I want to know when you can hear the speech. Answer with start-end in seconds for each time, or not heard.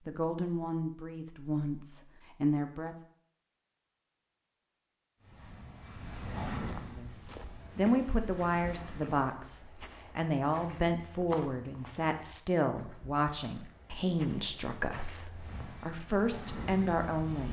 0.1-3.0, 6.8-17.4.